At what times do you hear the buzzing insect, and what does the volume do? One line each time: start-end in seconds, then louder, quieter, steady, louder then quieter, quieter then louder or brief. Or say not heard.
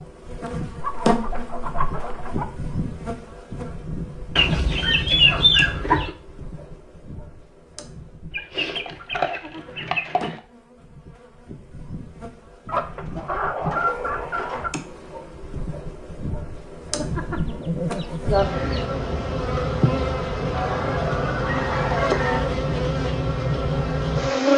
0.0-24.5 quieter then louder.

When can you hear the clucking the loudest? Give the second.
5 s.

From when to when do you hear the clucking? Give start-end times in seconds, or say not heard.
0.8-2.5, 4.3-6.1, 8.3-10.4, 12.7-14.7, 16.9-18.9, 20.5-22.6.